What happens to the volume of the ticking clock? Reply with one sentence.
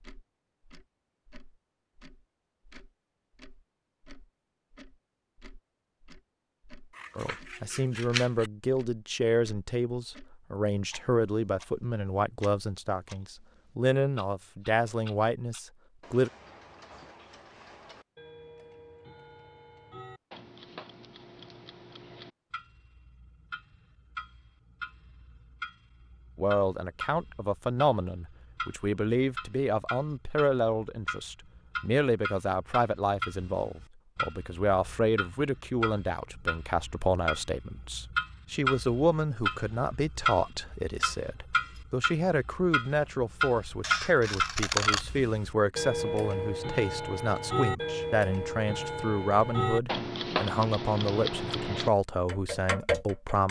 The volume of the ticking clock goes up.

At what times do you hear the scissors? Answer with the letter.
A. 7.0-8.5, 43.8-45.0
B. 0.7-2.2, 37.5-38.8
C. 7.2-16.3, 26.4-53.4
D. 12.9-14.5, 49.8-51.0
A.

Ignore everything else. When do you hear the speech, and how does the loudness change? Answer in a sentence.
You can hear the speech from 7.2 to 16.3 s, at a steady volume; and from 26.4 to 53.4 s, at a steady volume.